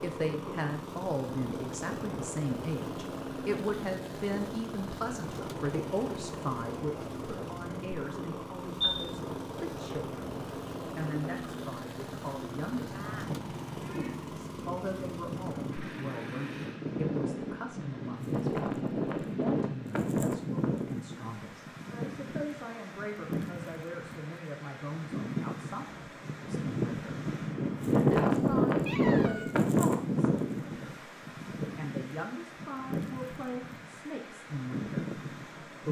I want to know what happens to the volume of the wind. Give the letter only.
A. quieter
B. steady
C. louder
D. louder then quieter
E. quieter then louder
C.